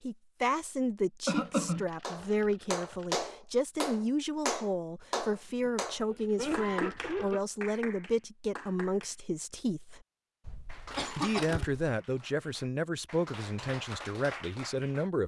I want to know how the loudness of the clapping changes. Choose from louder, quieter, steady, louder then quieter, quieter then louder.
quieter then louder.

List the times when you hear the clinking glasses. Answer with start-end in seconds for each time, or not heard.
not heard.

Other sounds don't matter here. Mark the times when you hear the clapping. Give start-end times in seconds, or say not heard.
2.0-9.2, 10.7-15.1.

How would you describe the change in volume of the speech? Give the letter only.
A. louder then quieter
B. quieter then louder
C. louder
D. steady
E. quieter
D.